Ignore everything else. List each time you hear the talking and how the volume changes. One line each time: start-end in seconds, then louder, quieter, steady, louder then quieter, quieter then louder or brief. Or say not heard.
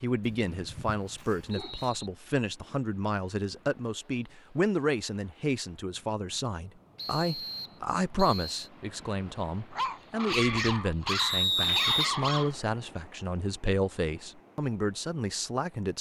0.0-15.9 steady.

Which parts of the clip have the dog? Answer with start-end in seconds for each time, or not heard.
0.2-1.9, 9.7-12.6.